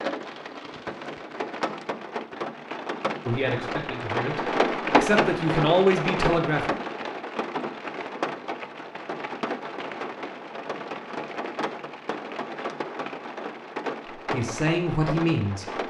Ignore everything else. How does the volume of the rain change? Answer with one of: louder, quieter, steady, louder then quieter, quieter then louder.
louder then quieter.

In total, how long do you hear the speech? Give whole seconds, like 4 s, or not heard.
5 s.